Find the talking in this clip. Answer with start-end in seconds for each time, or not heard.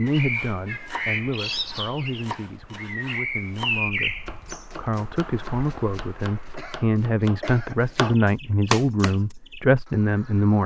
0.0-10.6.